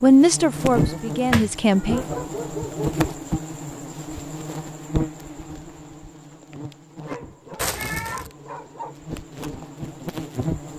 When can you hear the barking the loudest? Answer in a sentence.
The loudest moment of the barking is at 2 seconds.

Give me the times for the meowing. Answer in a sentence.
You can hear the meowing from 0.5 to 1.9 s and from 7.5 to 8.3 s.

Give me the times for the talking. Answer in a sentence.
The talking can be heard from 0.0 to 2.0 s.